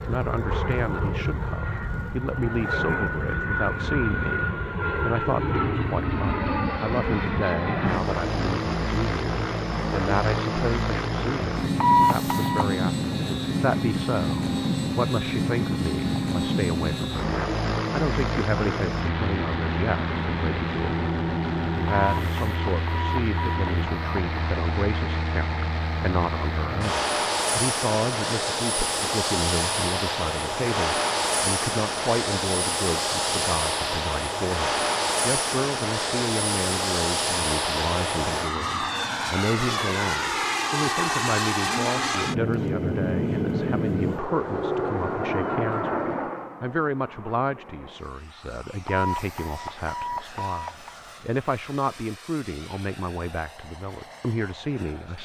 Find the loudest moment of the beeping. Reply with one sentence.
The loudest moment of the beeping is at 12 seconds.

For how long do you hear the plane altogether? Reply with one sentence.
You can hear the plane for 55 seconds altogether.